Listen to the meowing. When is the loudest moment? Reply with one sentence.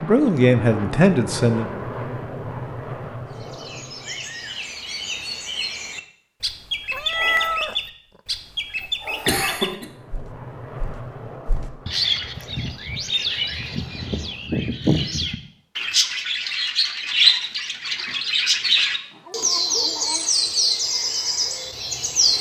The loudest moment of the meowing is at 7 seconds.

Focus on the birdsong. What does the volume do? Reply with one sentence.
The volume of the birdsong goes up.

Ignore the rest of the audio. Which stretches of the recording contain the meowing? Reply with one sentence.
The meowing can be heard from 6.9 to 7.8 s and from 18.6 to 20.4 s.